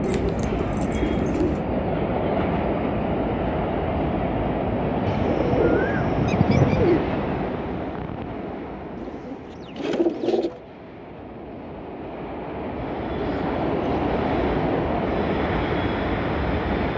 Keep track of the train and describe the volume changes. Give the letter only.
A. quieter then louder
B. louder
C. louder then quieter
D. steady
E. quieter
A.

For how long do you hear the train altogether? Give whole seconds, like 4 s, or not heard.
17 s.